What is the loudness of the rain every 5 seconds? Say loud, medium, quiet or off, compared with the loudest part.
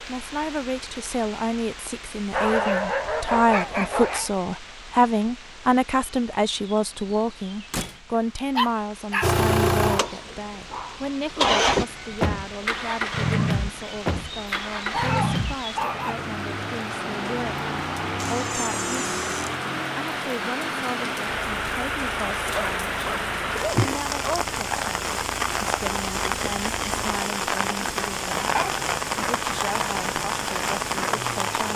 quiet, quiet, quiet, medium, loud, loud, loud.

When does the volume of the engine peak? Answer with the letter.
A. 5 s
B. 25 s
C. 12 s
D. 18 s
C.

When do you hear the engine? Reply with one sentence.
The engine can be heard from 9.2 to 31.6 s.